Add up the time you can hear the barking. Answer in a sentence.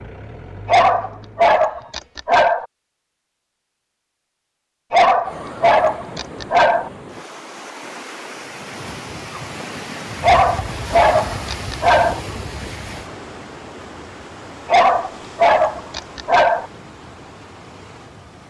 You can hear the barking for 8 seconds altogether.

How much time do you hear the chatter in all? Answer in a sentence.
You can't hear the chatter here.